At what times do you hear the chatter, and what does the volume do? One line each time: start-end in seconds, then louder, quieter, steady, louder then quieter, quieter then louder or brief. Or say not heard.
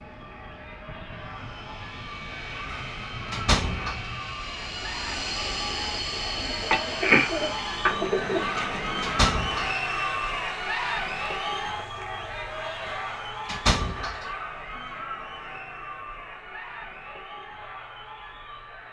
0.0-18.8 louder then quieter.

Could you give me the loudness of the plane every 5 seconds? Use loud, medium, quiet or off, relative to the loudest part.
medium, loud, off, off.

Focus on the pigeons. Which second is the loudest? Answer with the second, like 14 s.
7 s.